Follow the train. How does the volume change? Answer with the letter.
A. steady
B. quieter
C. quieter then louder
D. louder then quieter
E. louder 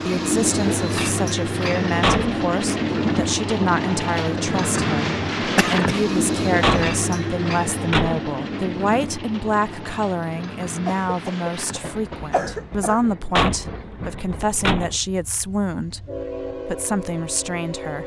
B.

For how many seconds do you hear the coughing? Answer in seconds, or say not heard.
3 s.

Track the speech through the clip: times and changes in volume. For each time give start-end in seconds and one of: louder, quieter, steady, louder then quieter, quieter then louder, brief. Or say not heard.
0.1-16.1 steady
16.6-18.0 brief.